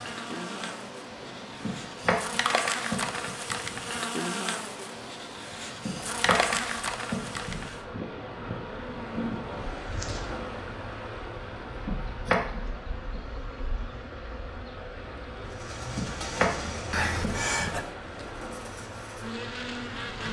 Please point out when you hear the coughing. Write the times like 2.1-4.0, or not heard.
16.9-17.9.